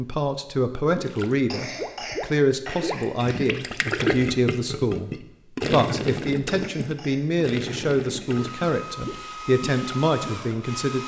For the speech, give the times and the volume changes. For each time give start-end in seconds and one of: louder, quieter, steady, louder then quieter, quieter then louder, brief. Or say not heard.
0.0-5.1 steady
5.7-11.0 steady.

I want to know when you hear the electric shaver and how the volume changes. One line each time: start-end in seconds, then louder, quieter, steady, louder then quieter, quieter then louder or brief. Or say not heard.
not heard.